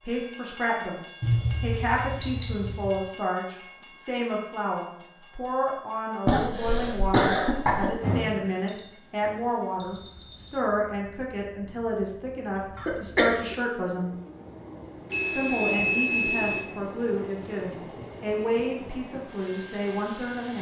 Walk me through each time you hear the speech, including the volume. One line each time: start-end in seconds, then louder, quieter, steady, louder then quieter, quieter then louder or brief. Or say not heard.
0.0-14.2 steady
15.3-20.5 steady.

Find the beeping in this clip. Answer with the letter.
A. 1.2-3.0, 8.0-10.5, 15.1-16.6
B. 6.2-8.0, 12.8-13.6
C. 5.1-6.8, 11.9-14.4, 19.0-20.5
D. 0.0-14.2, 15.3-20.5
A.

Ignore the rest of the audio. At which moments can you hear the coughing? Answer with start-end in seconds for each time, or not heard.
6.2-8.0, 12.8-13.6.